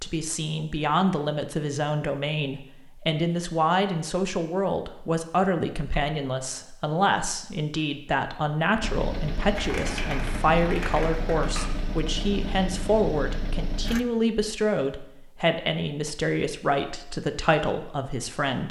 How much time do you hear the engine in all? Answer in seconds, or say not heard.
5 s.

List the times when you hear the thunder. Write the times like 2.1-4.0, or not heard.
not heard.